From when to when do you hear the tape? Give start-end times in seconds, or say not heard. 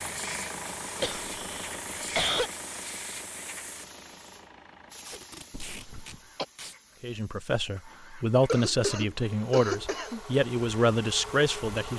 4.9-6.8.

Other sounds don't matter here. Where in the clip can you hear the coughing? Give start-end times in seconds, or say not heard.
1.0-2.5, 5.5-6.5, 8.4-10.2.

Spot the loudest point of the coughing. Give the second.
2 s.